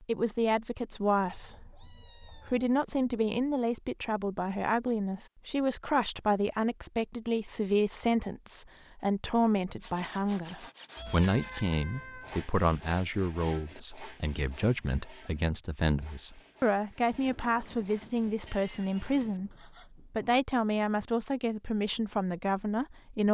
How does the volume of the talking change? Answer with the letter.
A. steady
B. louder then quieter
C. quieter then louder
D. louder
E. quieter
A.